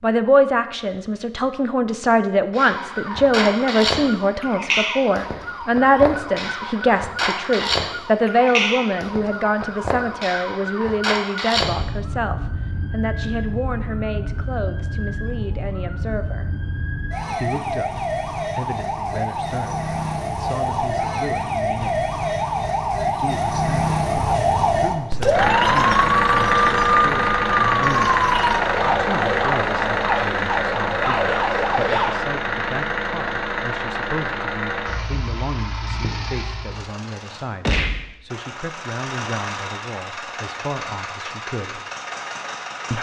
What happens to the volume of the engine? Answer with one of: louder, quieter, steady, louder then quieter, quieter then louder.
quieter.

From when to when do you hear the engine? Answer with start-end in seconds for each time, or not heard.
25.3-42.9.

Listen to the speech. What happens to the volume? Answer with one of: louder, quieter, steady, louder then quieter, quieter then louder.
quieter.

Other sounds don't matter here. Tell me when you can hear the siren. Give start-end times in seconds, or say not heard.
2.5-32.1.